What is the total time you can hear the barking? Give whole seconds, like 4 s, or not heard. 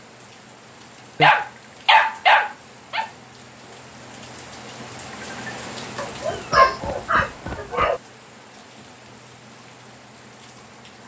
4 s.